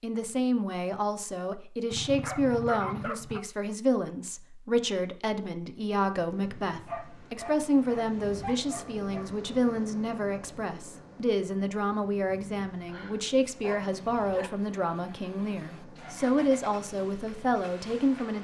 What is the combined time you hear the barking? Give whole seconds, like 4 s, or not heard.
6 s.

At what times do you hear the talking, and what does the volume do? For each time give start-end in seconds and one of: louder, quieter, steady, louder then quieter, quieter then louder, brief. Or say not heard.
0.0-18.3 steady.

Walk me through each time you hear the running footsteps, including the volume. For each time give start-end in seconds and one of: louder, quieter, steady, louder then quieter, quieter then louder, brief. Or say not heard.
not heard.